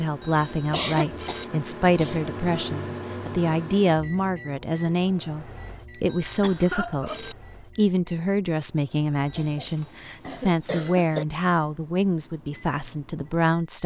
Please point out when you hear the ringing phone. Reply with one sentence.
You can hear the ringing phone from 0.2 to 1.4 s, from 6.0 to 7.3 s and from 9.2 to 10.0 s.